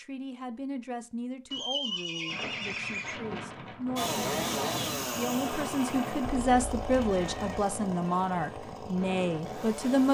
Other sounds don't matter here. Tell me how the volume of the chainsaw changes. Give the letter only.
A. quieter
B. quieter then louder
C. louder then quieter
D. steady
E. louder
A.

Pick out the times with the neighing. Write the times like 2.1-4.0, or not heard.
1.5-3.1, 6.5-7.8.